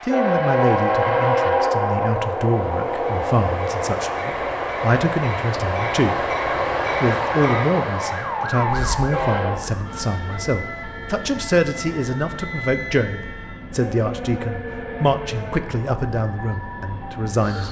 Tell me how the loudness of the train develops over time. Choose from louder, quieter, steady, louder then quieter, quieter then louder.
quieter.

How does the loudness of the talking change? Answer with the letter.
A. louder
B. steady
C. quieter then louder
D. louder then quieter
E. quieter
B.